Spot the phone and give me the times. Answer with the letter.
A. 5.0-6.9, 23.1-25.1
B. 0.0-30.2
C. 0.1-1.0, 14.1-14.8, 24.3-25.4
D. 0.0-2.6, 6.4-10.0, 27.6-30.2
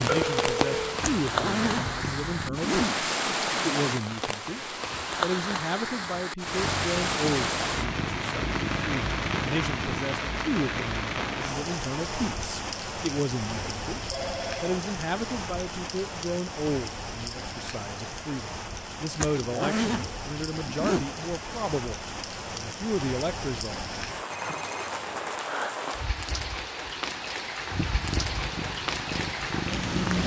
C.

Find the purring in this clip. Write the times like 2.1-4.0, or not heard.
0.0-2.6, 6.4-10.0, 27.6-30.2.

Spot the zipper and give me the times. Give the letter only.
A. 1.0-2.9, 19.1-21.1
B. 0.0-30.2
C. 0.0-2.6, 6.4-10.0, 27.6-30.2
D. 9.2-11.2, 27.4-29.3
A.